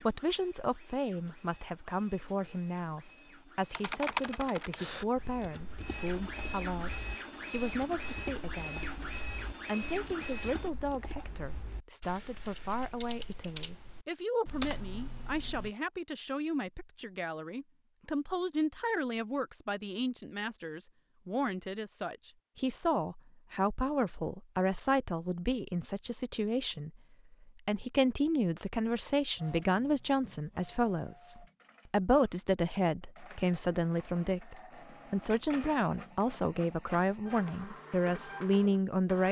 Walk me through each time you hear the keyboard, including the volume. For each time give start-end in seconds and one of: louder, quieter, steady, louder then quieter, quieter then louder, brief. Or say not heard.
3.7-15.7 quieter then louder.